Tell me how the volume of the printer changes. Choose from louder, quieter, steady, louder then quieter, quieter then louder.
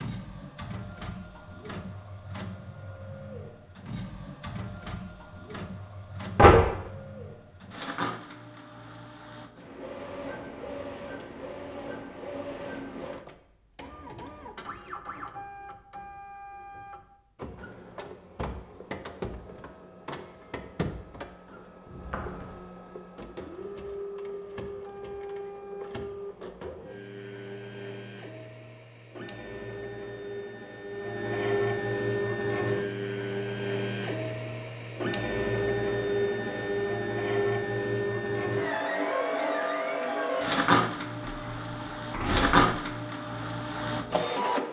louder.